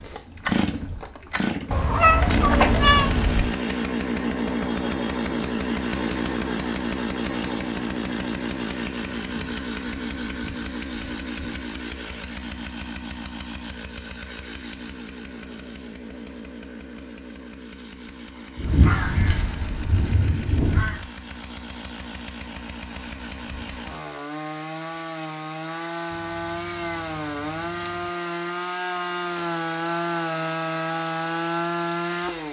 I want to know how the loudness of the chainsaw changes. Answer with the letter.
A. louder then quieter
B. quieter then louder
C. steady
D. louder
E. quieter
B.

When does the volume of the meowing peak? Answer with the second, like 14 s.
3 s.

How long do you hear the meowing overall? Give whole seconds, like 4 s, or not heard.
4 s.